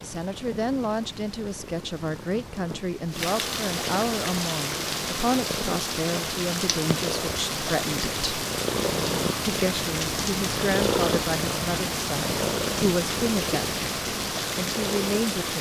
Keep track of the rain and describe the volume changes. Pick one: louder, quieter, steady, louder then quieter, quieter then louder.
louder.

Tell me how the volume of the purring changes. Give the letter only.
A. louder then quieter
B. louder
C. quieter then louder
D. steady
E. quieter
B.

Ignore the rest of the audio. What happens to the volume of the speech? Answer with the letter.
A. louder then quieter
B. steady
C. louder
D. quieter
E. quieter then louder
B.